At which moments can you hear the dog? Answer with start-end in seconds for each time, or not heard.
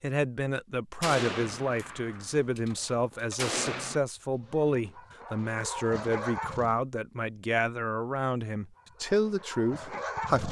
4.2-6.8, 8.7-10.4.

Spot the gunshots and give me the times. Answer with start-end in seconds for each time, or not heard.
1.0-4.0.